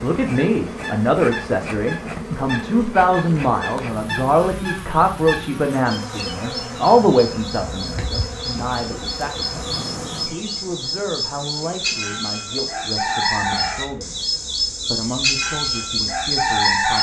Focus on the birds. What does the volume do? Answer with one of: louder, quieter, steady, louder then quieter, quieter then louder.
louder.